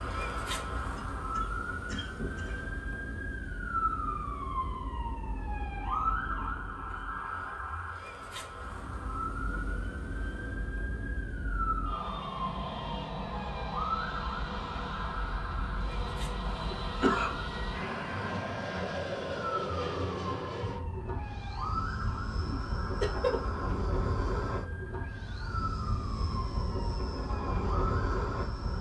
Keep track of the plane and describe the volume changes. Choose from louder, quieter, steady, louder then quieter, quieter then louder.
louder.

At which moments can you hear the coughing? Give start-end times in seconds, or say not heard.
0.9-2.6, 16.8-17.4, 22.4-23.6.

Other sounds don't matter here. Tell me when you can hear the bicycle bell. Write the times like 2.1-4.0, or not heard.
not heard.